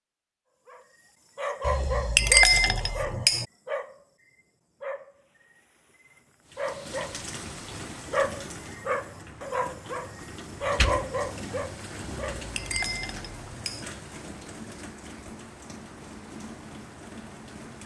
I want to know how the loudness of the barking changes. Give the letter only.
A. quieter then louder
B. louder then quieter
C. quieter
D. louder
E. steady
A.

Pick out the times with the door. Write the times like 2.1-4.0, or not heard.
10.6-11.7.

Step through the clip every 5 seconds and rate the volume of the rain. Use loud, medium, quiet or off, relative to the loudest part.
off, loud, loud, loud.